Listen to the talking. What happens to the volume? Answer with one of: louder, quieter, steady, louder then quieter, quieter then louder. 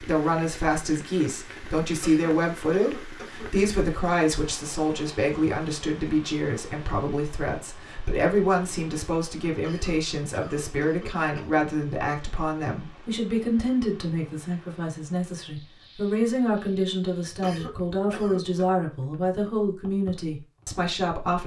steady.